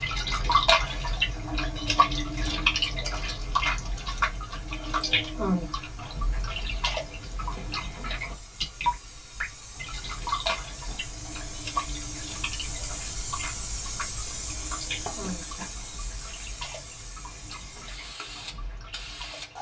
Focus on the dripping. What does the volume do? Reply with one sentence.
The loudness of the dripping goes down.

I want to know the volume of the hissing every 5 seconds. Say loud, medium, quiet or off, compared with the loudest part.
medium, medium, loud, loud.